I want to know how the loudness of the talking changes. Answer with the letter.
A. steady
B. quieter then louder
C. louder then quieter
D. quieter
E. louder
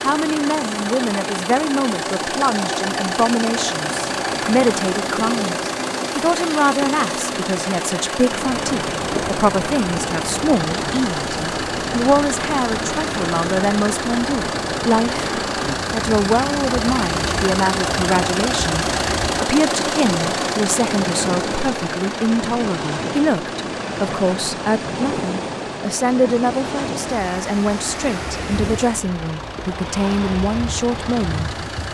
A.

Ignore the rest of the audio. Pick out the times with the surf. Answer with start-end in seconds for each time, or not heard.
8.2-31.8.